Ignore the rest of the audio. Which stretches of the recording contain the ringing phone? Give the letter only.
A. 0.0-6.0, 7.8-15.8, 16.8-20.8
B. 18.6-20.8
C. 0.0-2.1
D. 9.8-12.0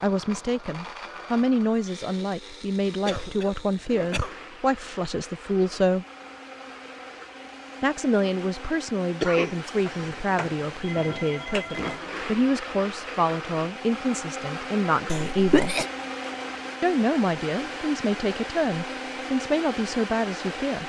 D.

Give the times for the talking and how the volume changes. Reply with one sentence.
You can hear the talking from 0.0 to 6.0 s, at a steady volume; from 7.8 to 15.8 s, at a steady volume; and from 16.8 to 20.8 s, at a steady volume.